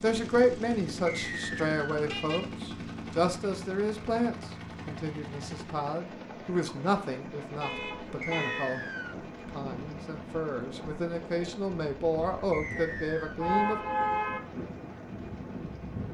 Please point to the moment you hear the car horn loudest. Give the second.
14 s.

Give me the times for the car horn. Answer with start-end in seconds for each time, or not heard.
2.0-2.6, 7.6-8.7, 13.3-14.4.